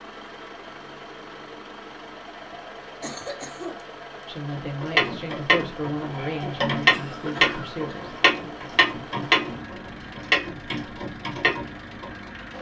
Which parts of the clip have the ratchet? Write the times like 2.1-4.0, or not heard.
4.5-12.1.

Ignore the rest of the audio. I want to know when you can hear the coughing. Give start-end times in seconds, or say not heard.
2.5-4.2, 6.9-8.0.